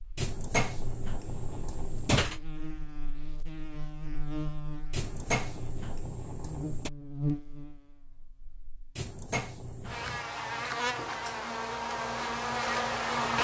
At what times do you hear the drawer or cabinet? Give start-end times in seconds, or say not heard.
0.1-2.4, 4.9-6.9, 8.9-10.2.